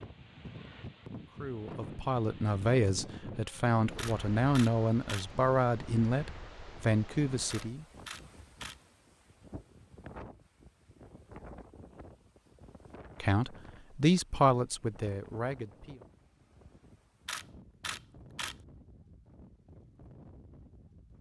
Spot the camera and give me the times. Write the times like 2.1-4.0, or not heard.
4.0-5.2, 7.5-8.8, 17.2-18.6.